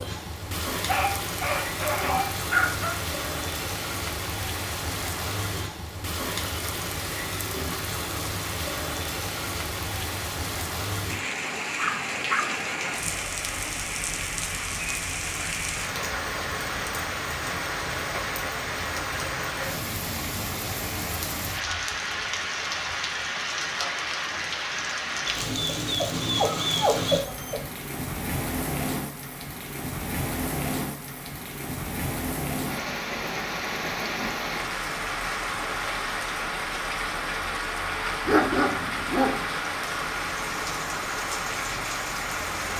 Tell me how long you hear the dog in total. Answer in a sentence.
The dog can be heard for 7 seconds in total.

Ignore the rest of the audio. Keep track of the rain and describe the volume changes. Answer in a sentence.
The loudness of the rain stays about the same.